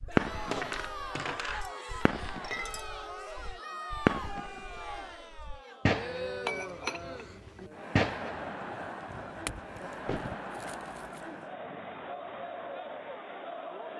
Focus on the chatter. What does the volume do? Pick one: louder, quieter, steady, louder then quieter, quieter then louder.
steady.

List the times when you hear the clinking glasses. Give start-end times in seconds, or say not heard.
0.3-2.9, 6.5-7.7, 9.4-11.2.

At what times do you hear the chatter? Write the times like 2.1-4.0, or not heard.
0.1-13.9.